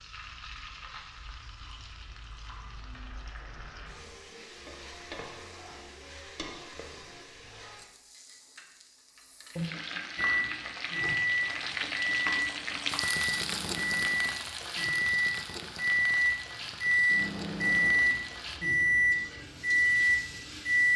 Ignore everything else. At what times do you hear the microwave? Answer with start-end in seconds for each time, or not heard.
10.2-20.9.